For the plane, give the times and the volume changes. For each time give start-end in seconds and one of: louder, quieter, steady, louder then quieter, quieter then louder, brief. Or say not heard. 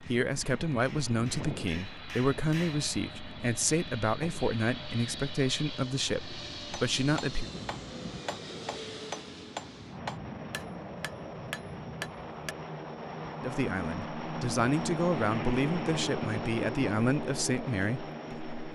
0.0-18.7 louder.